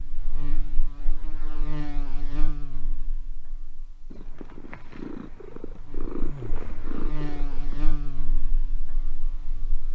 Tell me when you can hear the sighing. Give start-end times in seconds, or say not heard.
5.8-7.0.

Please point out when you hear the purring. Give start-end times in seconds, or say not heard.
4.1-7.8.